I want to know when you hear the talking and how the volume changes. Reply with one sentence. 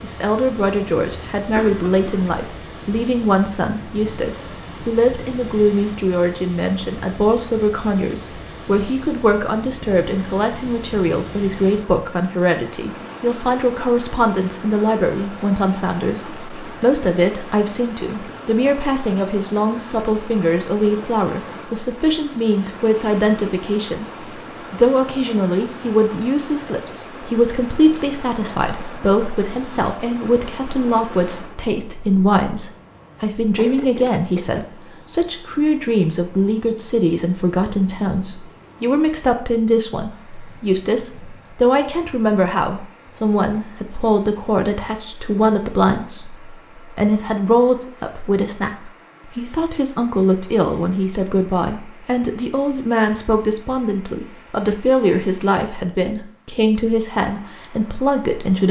You can hear the talking from 0.0 to 24.1 s, at a steady volume; and from 24.7 to 58.6 s, at a steady volume.